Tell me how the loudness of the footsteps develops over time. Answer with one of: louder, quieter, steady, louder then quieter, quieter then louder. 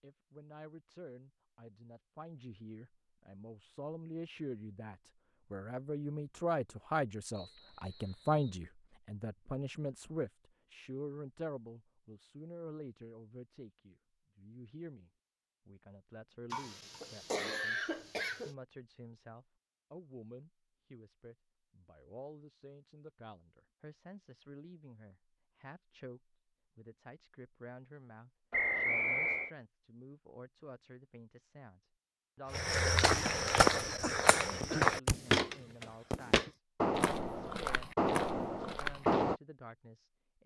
quieter.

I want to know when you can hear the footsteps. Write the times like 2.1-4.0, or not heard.
32.5-39.4.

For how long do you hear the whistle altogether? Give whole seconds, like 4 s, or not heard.
2 s.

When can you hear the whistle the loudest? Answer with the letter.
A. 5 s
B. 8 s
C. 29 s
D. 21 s
C.